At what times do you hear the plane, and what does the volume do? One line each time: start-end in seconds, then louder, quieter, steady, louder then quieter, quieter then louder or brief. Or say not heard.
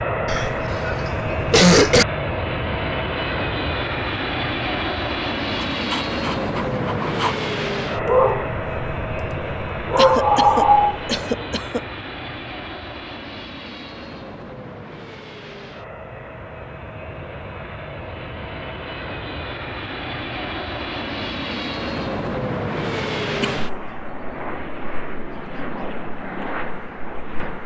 0.0-27.6 quieter then louder.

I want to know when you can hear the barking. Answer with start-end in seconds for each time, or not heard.
5.5-11.1.